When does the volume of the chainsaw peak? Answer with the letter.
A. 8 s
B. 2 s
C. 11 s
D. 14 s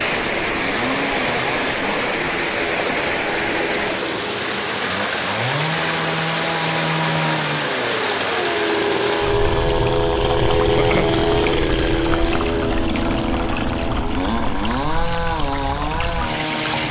C.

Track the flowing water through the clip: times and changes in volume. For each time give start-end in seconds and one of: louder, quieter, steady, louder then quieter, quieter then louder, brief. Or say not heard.
0.0-16.8 quieter.